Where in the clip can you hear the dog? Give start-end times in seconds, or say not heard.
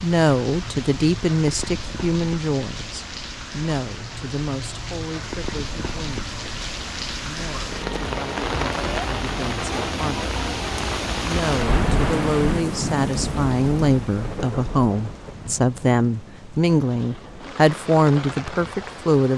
not heard.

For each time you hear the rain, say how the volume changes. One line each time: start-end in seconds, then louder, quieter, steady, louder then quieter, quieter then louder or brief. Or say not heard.
0.0-19.3 louder then quieter.